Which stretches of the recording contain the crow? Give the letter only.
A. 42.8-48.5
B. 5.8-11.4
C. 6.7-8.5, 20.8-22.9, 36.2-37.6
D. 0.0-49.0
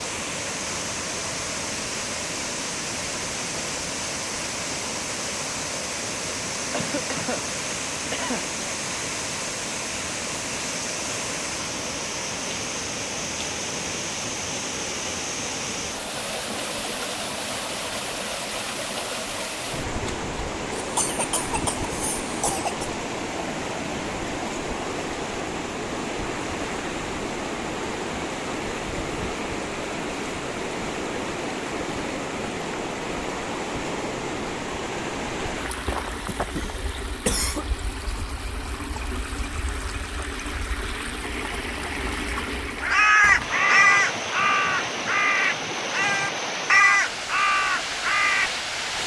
A.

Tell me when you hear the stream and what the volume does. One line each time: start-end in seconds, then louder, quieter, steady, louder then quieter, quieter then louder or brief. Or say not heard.
0.0-49.0 steady.